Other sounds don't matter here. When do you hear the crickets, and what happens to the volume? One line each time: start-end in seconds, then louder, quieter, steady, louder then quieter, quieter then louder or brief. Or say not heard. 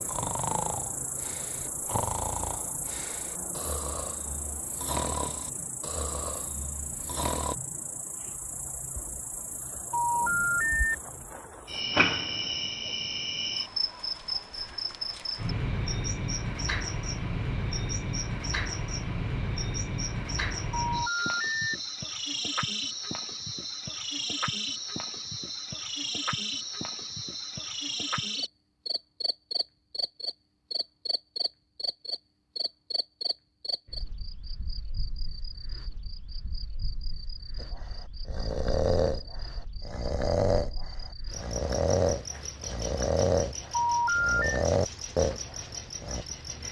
0.0-46.6 louder then quieter.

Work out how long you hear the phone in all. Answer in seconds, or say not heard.
3 s.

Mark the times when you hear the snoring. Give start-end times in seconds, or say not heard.
0.0-7.5, 37.5-46.2.